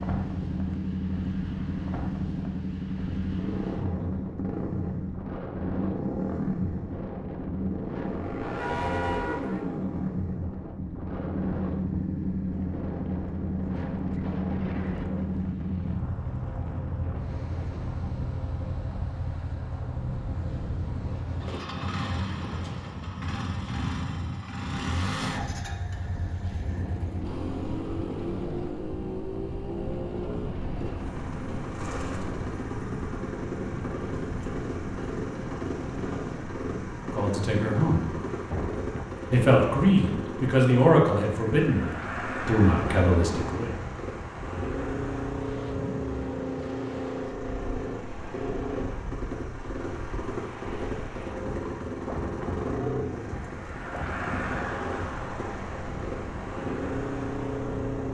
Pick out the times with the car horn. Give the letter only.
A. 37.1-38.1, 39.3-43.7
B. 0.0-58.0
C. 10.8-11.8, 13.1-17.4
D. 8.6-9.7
D.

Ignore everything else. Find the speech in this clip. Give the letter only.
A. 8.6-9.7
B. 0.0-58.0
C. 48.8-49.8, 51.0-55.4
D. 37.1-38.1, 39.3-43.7
D.